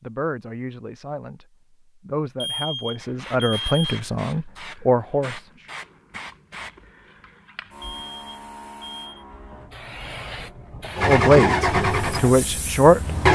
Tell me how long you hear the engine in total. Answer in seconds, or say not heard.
2 s.